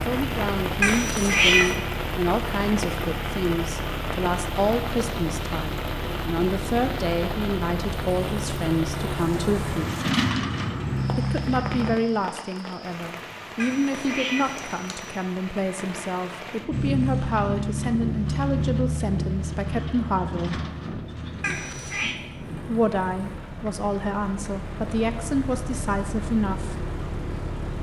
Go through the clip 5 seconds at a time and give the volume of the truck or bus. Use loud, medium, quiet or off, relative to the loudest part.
medium, medium, loud, loud, quiet, medium.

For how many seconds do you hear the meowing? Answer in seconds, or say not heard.
3 s.